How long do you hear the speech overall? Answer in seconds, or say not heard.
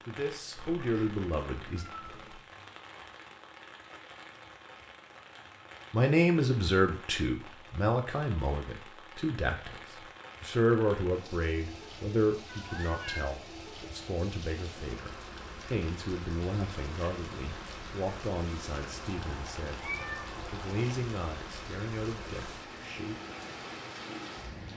18 s.